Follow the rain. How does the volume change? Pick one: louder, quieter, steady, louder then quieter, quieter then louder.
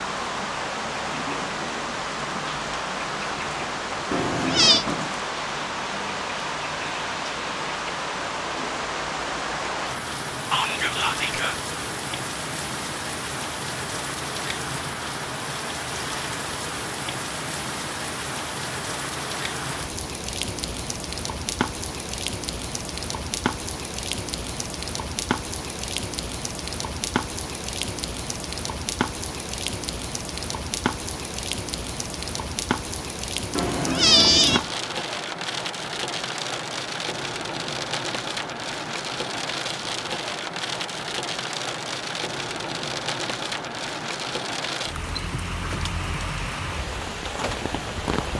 steady.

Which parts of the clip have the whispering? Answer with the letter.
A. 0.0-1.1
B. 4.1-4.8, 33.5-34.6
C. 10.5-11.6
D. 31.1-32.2
C.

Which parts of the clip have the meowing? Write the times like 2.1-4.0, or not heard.
4.1-4.8, 33.5-34.6.